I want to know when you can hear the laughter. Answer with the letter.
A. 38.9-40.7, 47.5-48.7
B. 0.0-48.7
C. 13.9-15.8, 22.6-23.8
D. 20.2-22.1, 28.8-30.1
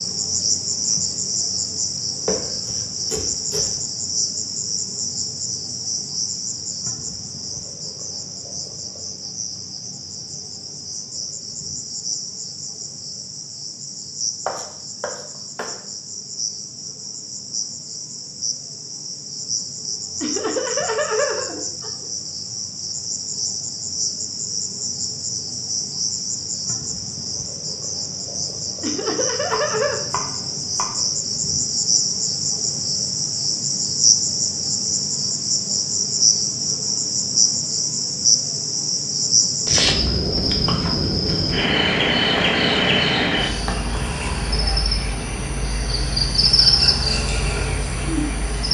D.